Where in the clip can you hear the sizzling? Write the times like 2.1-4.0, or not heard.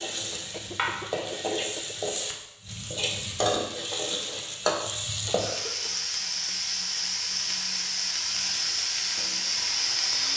0.0-10.3.